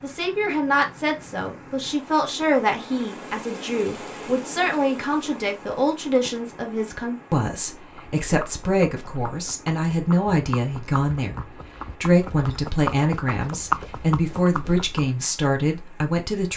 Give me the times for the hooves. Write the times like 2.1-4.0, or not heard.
8.0-15.1.